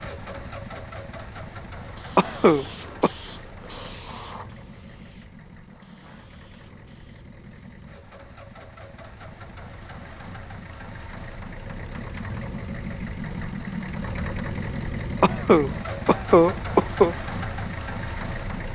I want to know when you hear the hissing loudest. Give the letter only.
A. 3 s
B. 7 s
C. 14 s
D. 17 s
A.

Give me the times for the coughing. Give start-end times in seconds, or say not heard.
2.1-3.1, 15.2-17.1.